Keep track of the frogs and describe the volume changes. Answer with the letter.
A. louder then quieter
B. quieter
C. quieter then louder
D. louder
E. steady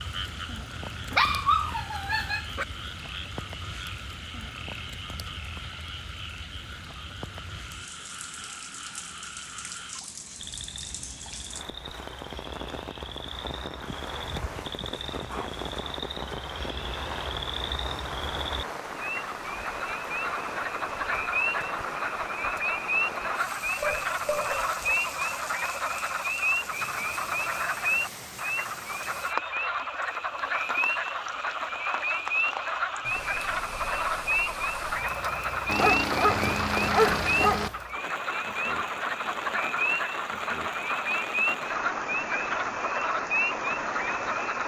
D.